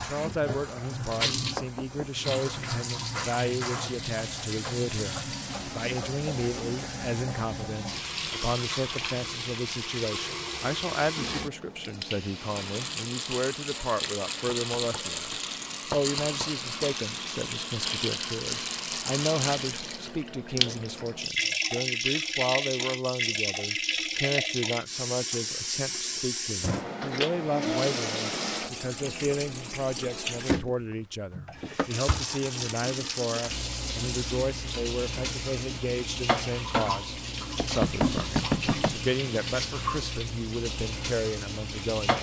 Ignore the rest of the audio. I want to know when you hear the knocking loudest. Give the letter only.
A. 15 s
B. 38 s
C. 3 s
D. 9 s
B.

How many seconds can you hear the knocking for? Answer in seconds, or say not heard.
3 s.